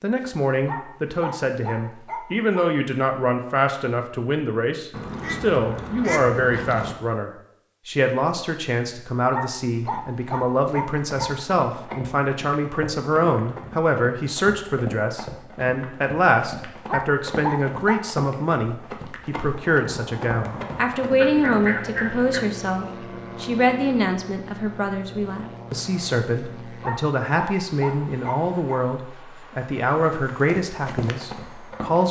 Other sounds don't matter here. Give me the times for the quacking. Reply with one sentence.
You can hear the quacking from 4.9 to 7.0 s and from 21.1 to 22.4 s.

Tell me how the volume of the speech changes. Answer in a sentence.
The loudness of the speech stays about the same.